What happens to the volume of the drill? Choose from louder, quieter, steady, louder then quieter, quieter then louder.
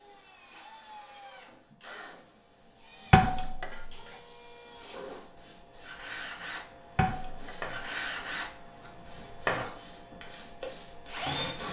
louder.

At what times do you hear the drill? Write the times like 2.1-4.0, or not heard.
0.0-11.6.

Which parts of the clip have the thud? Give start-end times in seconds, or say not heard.
3.1-3.9, 7.0-7.8.